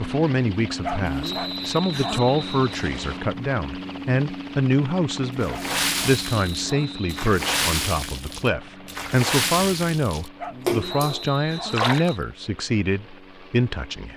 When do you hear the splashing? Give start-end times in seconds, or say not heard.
5.4-12.2.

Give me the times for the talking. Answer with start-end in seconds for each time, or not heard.
0.0-14.1.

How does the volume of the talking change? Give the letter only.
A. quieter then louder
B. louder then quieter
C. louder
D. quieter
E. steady
E.